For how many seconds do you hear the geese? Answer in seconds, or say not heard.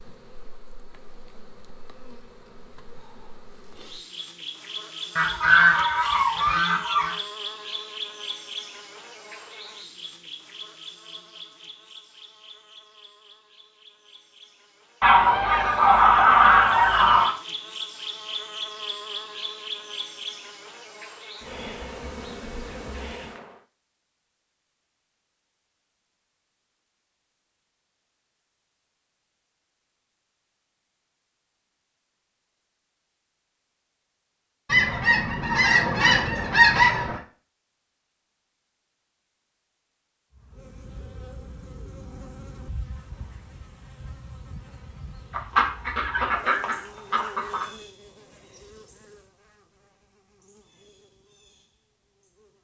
9 s.